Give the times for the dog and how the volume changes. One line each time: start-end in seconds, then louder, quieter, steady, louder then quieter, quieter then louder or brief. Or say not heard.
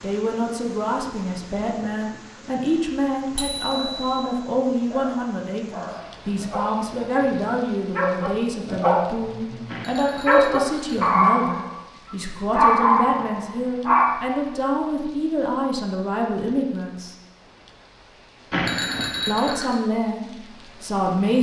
3.7-11.7 louder
12.5-14.1 brief.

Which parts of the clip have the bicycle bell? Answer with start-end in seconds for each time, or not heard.
3.4-4.2, 9.7-11.2, 18.5-19.8.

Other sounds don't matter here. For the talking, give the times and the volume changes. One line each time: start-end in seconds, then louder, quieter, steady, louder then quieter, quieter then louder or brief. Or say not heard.
0.0-17.1 steady
19.2-21.3 brief.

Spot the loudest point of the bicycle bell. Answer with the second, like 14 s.
19 s.